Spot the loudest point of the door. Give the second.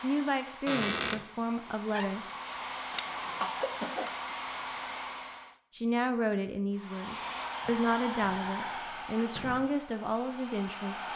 1 s.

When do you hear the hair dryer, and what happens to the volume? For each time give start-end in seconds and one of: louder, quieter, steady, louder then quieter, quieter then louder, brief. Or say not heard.
0.0-5.6 louder
6.7-11.1 quieter.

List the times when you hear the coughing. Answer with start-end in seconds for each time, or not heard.
2.9-4.3.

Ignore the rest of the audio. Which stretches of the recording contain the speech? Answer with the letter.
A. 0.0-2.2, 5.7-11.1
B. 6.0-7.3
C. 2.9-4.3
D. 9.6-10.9
A.